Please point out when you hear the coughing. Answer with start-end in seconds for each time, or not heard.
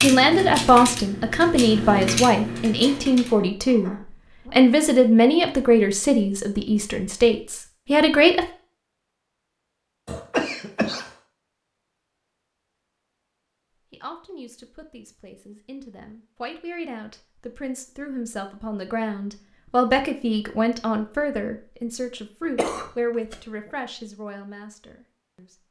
2.8-4.5, 10.1-11.1, 22.6-23.4.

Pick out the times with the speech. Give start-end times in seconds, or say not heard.
0.0-8.4, 13.9-25.6.